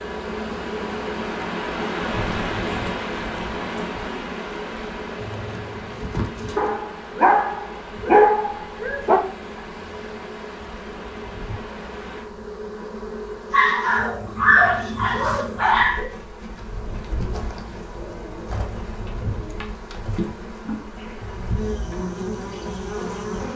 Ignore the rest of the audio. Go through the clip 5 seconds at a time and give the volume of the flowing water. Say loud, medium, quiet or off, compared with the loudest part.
loud, medium, medium, off, off.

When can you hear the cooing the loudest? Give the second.
6 s.